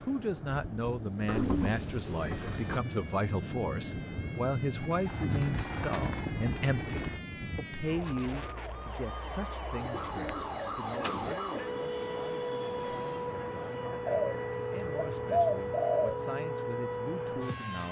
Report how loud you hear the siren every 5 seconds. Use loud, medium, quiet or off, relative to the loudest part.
quiet, medium, loud, loud.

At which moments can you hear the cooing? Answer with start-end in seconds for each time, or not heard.
1.2-2.8, 4.8-7.2, 9.8-11.4, 14.1-16.2.